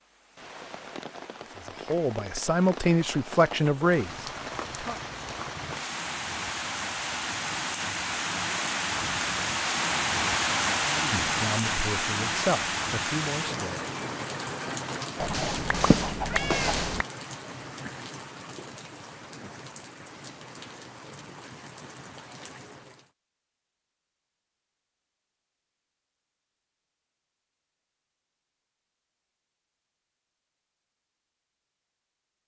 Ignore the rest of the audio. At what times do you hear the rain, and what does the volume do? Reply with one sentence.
You can hear the rain from 0.0 to 23.1 s, getting louder then quieter.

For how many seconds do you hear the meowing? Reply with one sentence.
The meowing can be heard for 2 seconds in total.